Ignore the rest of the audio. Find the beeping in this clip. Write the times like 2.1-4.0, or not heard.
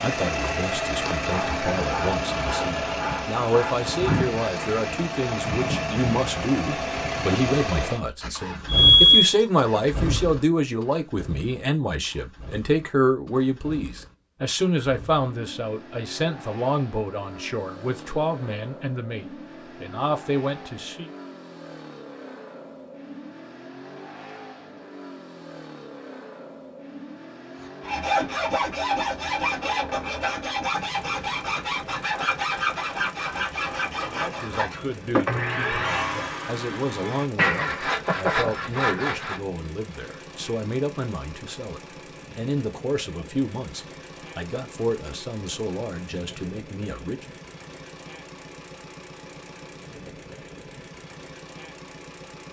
8.2-9.3.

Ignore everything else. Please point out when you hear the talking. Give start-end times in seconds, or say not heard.
0.0-21.1, 34.1-47.2.